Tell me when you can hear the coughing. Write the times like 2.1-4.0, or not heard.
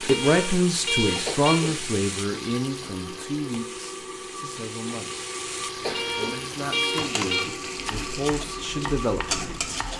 1.2-1.9, 5.8-6.5.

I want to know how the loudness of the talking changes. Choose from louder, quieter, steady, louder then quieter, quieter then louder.
quieter then louder.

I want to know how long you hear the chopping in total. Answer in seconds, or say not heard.
3 s.